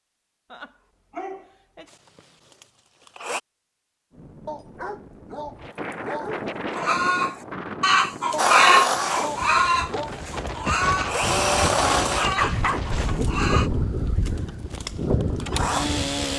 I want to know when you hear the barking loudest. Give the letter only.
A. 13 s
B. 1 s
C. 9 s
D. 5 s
A.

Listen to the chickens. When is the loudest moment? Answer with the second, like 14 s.
9 s.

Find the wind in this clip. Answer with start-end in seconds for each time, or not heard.
4.1-16.3.